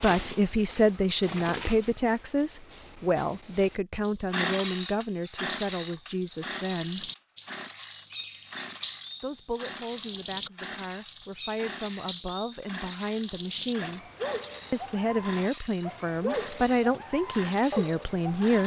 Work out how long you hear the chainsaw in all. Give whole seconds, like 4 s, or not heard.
14 s.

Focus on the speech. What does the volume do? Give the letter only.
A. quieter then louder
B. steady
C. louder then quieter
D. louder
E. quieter
A.